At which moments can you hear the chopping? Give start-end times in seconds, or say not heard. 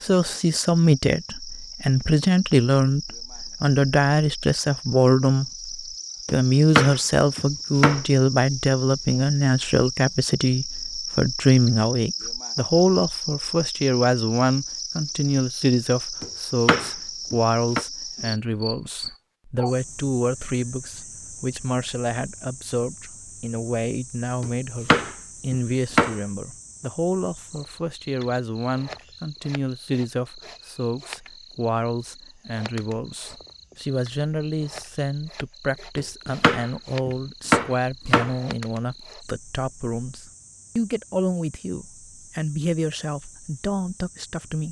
6.2-8.0, 16.2-17.9, 24.4-26.1, 36.0-38.4.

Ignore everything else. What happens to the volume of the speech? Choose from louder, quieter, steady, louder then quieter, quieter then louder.
quieter.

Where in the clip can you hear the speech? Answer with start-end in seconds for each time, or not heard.
0.0-44.6.